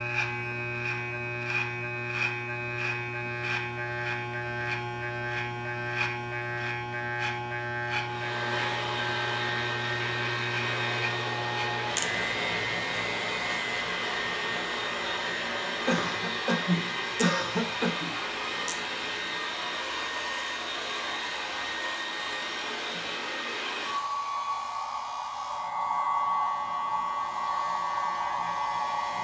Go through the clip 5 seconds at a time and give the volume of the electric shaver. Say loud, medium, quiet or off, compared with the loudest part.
loud, loud, loud, medium, quiet, quiet.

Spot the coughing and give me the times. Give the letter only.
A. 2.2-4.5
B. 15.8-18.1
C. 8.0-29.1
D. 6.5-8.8
B.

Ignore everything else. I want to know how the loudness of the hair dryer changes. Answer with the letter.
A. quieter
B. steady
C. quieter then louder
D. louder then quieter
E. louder
B.